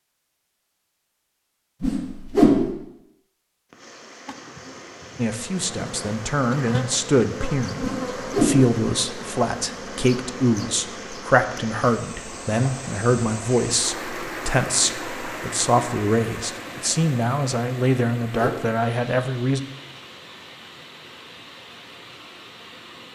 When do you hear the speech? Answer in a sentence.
The speech can be heard from 5.2 to 19.6 s.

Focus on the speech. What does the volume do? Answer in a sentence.
The loudness of the speech stays about the same.